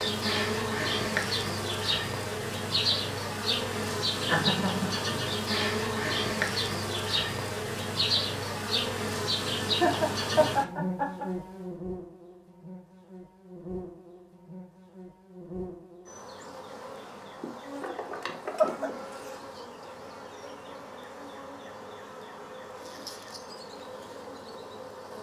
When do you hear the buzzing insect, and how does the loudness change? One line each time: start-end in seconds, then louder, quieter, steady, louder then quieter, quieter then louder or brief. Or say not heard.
0.0-25.1 quieter.